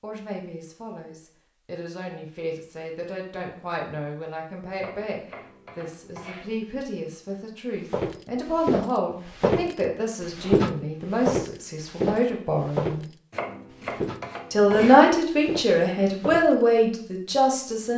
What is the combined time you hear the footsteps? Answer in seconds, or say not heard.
9 s.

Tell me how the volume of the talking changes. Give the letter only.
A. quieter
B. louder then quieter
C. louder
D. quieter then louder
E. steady
C.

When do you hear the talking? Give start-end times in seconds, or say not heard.
0.0-13.1, 14.5-17.9.